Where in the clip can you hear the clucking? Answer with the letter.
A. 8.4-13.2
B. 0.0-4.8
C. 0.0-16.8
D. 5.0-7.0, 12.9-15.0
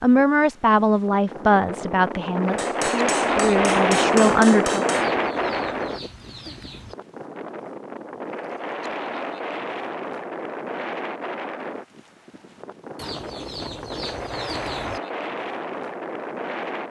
D.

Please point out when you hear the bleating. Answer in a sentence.
You can't hear the bleating here.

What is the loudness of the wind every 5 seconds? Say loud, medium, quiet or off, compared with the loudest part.
loud, medium, medium, medium.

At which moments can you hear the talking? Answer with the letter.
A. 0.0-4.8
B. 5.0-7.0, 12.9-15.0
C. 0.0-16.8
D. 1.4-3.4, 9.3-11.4
A.